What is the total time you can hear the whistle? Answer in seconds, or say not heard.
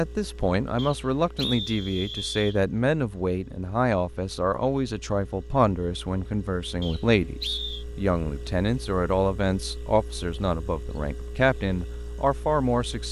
3 s.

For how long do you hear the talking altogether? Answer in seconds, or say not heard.
13 s.